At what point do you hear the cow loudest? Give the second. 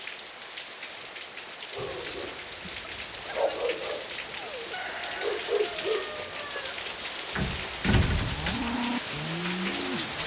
9 s.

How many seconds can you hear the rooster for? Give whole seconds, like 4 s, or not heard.
2 s.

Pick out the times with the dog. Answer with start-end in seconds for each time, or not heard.
1.7-7.1.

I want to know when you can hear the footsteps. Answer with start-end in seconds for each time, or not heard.
not heard.